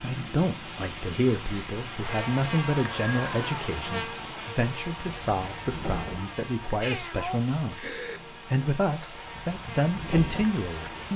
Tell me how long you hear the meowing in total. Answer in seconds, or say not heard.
3 s.